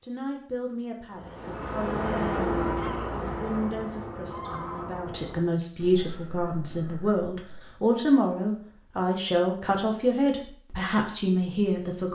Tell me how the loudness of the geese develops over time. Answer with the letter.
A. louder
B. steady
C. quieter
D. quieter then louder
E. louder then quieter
C.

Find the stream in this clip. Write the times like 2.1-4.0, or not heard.
not heard.